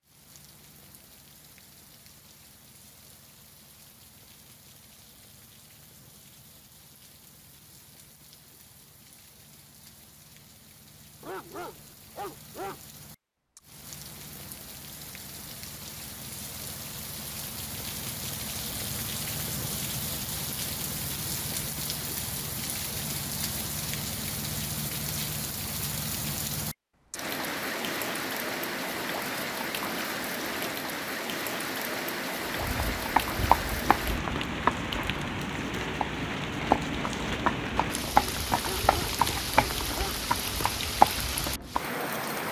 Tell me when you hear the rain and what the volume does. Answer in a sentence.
The rain can be heard from 0.0 to 42.4 s, getting louder.